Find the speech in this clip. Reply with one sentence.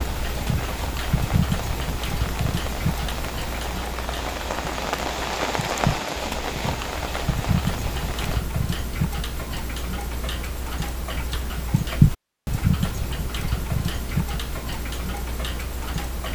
You can't hear the speech here.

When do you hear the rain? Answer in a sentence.
The rain can be heard from 0.0 to 8.4 s.